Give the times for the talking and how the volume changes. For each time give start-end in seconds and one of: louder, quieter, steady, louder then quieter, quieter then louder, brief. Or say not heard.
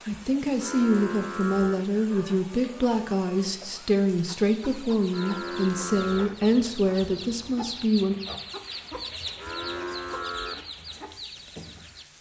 0.1-8.2 steady.